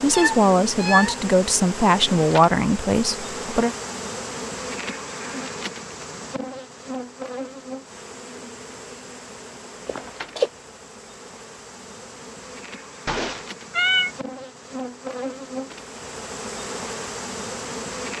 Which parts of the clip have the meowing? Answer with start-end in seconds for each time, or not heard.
0.1-1.2, 9.8-10.5, 13.1-14.1.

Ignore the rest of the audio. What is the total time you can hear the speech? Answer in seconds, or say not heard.
4 s.